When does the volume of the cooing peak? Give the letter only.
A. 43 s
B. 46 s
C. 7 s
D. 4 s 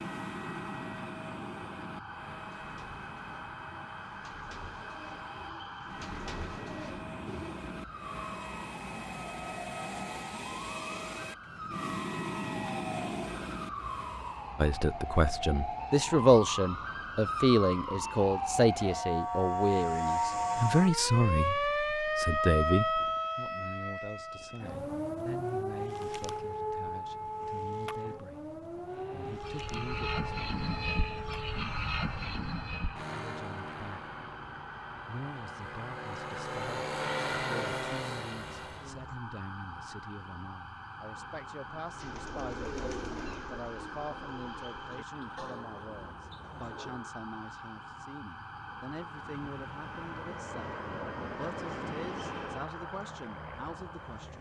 A.